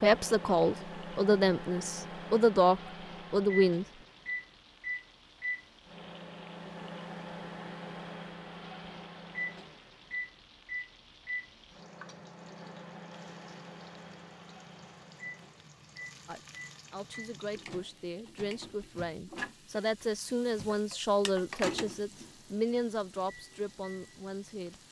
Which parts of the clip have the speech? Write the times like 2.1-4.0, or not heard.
0.0-3.9, 16.2-24.8.